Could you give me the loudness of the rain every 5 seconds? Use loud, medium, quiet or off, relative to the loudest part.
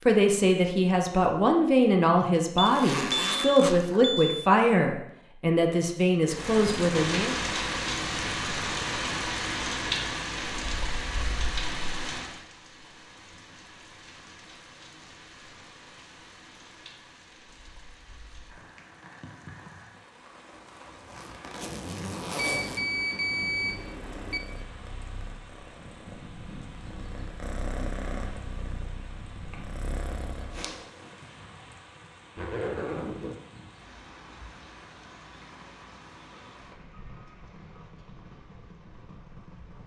off, loud, medium, quiet, quiet, quiet, quiet, quiet.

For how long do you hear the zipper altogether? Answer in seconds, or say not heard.
4 s.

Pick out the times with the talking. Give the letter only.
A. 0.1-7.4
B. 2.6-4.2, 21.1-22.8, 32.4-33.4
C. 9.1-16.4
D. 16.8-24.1
A.